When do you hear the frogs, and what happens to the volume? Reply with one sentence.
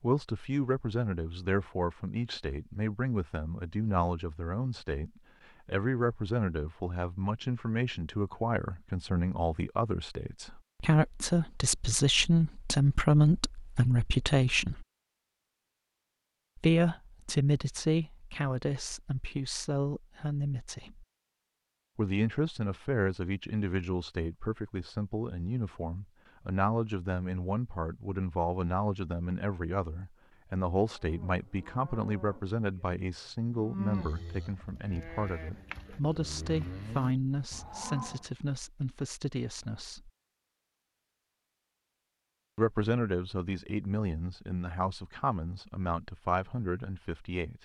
You can't hear the frogs here.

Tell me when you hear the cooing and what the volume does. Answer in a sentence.
The cooing can't be heard in this clip.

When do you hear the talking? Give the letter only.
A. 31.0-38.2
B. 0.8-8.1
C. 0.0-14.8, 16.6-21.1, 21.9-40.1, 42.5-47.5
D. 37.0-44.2
C.